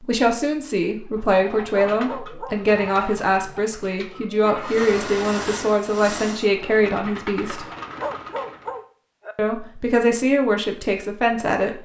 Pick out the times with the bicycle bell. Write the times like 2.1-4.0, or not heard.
not heard.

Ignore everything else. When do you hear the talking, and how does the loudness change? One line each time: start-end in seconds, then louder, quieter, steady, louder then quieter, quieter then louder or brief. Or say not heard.
0.0-7.7 steady
9.3-11.7 brief.